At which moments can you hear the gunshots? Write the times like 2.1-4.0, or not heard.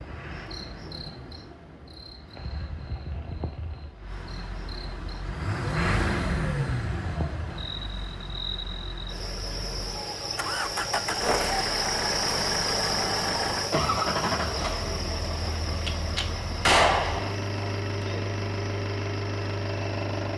15.8-17.4.